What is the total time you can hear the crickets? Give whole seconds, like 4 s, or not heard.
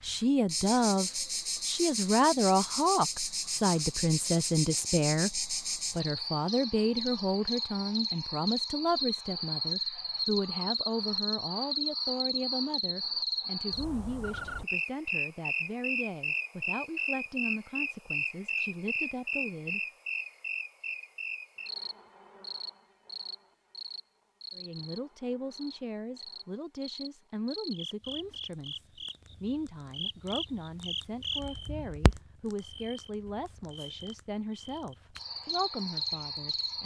37 s.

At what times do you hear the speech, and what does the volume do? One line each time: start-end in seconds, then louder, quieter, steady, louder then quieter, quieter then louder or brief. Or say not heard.
0.0-19.8 quieter
24.6-36.8 steady.